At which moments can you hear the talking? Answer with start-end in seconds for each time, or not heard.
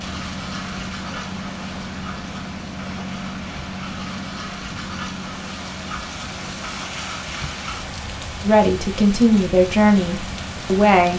8.4-11.1.